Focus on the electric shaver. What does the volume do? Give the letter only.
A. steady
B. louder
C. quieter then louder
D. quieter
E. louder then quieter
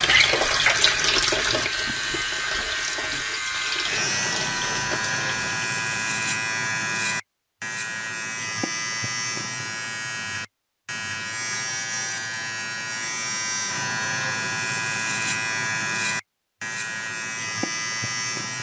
A.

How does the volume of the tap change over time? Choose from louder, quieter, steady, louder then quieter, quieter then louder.
quieter.